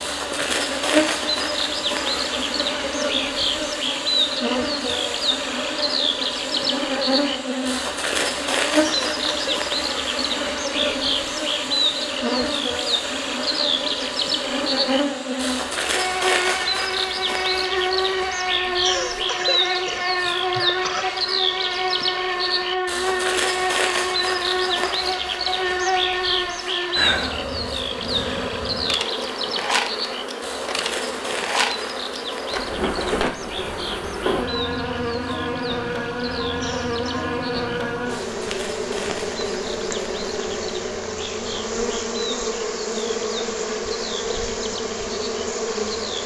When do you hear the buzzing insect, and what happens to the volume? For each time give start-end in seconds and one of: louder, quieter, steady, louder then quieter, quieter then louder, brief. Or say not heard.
0.0-46.2 steady.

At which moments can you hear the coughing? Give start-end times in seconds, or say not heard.
8.8-9.7, 18.8-21.1, 36.5-37.3.